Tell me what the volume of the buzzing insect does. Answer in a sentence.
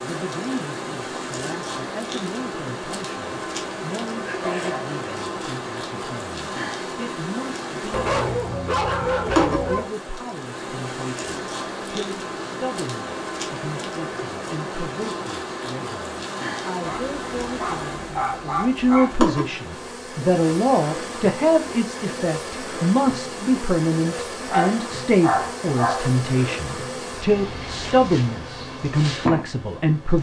The loudness of the buzzing insect stays about the same.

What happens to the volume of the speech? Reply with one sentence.
The volume of the speech goes up.